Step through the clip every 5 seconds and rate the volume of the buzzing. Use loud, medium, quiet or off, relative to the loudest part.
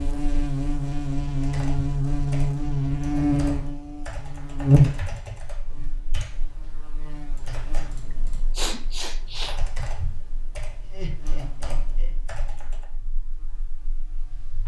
loud, quiet, quiet.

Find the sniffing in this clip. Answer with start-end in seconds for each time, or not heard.
8.5-9.6.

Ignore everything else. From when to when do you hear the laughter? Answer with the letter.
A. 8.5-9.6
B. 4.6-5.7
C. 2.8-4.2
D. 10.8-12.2
D.